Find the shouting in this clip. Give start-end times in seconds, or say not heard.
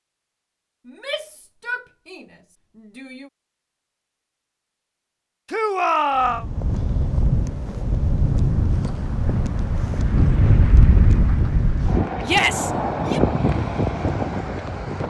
0.8-3.3, 5.5-6.5, 12.2-13.2.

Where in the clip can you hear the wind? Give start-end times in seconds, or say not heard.
6.2-15.0.